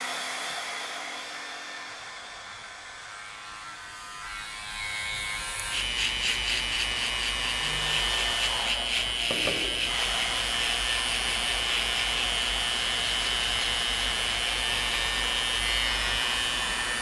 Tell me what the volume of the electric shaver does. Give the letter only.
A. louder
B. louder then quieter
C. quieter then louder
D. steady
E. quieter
A.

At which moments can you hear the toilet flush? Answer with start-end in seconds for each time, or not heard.
not heard.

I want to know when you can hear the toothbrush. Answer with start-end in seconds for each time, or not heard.
not heard.